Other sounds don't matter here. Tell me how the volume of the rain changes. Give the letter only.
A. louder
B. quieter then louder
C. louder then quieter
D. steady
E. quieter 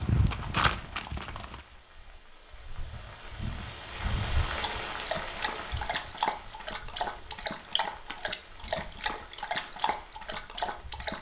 C.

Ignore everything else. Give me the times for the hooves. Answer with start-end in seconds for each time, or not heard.
0.0-1.6.